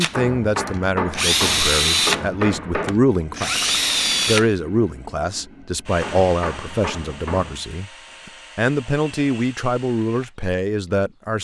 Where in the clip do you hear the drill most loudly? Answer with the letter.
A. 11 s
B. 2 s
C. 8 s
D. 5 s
B.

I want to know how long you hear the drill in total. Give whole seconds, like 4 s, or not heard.
11 s.